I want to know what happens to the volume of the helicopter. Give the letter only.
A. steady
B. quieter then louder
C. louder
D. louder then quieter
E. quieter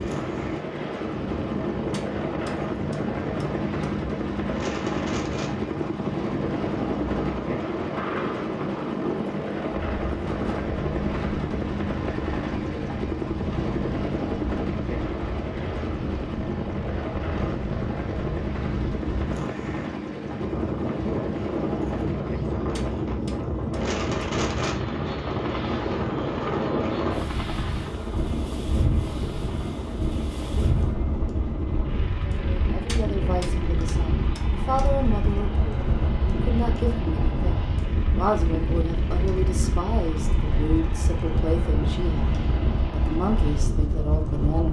E.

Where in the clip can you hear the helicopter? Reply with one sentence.
The helicopter can be heard from 0.0 to 44.6 s.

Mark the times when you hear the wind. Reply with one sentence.
The wind can be heard from 0.0 to 44.6 s.